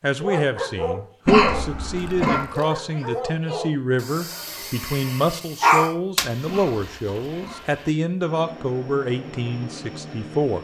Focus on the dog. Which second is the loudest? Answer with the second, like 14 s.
6 s.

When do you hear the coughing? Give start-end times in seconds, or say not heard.
1.2-2.5, 6.5-7.7.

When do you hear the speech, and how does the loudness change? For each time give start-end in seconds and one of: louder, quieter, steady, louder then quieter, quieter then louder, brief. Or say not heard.
0.0-10.6 steady.